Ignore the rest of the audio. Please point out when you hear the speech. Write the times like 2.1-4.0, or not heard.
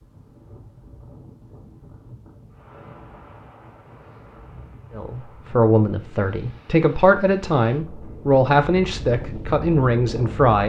5.0-10.6.